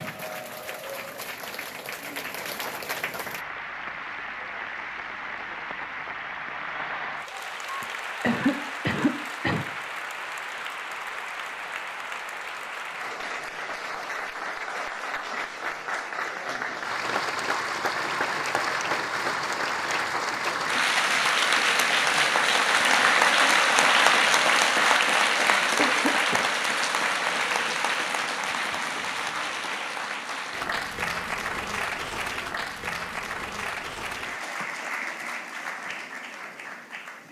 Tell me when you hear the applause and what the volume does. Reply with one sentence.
You can hear the applause from 0.0 to 37.2 s, getting louder then quieter.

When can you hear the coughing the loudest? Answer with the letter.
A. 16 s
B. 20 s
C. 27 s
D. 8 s
D.